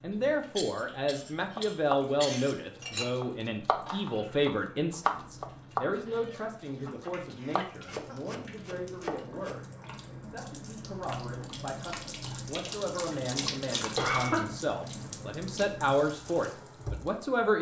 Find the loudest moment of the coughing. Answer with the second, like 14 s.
14 s.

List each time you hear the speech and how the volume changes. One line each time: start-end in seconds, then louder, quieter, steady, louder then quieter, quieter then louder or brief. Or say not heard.
0.0-17.5 quieter then louder.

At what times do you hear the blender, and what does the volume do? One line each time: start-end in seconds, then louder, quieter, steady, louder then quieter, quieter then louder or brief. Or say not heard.
not heard.